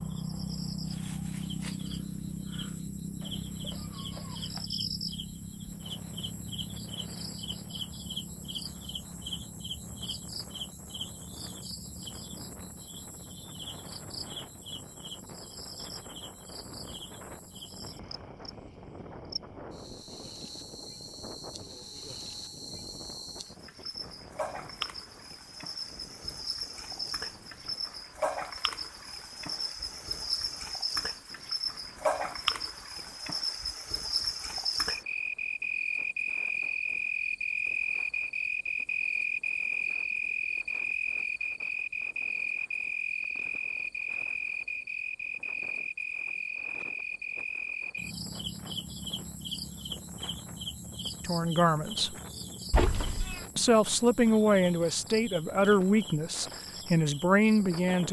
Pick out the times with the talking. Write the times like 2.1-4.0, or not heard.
51.2-52.1, 53.5-58.0.